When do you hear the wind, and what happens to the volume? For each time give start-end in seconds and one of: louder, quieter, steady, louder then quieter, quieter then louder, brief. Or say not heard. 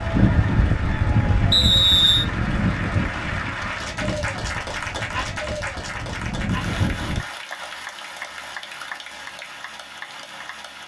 0.0-7.2 quieter then louder.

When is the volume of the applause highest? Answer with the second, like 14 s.
5 s.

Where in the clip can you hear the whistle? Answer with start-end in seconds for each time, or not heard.
1.5-2.2.